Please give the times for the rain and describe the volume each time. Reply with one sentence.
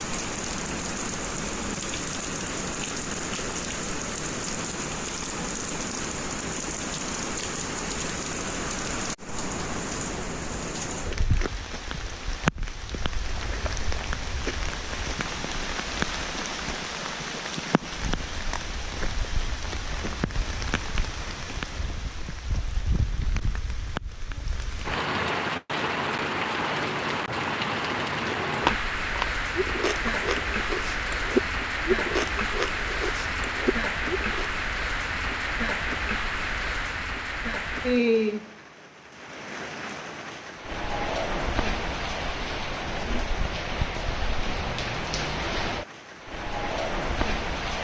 The rain can be heard from 0.0 to 47.7 s, at a steady volume.